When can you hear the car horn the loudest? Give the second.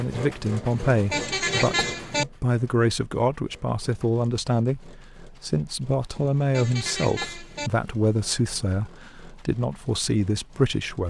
2 s.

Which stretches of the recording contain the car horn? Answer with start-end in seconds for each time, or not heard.
0.7-2.2, 6.2-7.7.